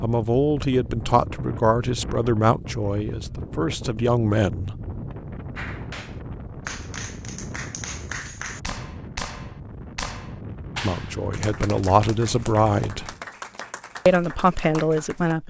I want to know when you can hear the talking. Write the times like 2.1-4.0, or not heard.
0.0-4.8, 10.8-13.1, 14.1-15.4.